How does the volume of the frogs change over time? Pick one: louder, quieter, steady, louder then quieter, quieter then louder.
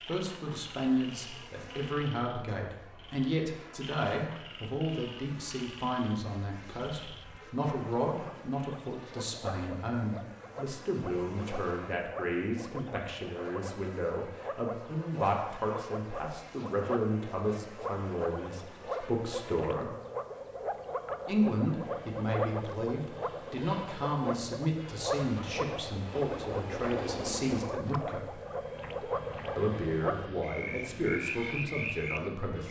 louder.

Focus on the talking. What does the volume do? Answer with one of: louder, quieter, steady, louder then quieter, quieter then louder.
steady.